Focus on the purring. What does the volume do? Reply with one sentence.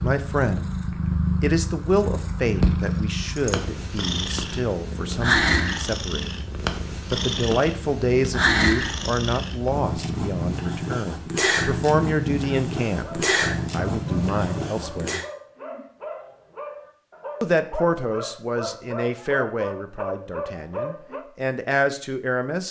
The volume of the purring stays about the same.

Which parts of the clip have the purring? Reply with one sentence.
You can hear the purring from 0.0 to 15.2 s.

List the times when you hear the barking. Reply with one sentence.
You can hear the barking from 12.8 to 21.2 s.